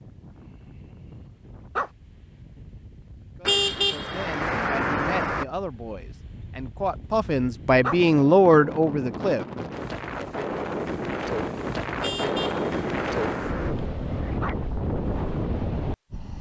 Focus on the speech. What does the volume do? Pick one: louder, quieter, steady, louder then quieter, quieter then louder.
louder.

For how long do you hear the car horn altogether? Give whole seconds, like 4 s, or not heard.
4 s.